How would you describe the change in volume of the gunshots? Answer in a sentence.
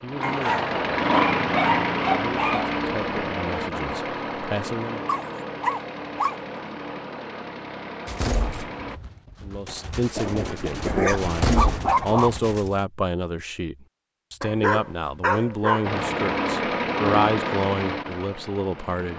The loudness of the gunshots goes up, then down.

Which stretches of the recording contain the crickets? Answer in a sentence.
The crickets can't be heard in this clip.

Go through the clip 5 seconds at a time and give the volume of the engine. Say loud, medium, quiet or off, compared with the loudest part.
loud, medium, off, loud.